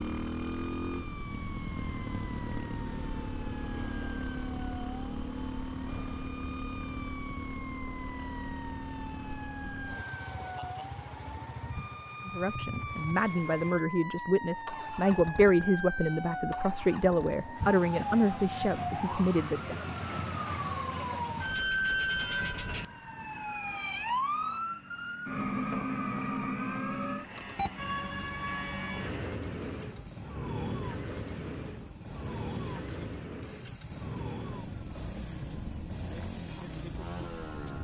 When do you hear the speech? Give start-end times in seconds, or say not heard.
12.2-19.8.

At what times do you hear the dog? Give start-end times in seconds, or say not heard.
not heard.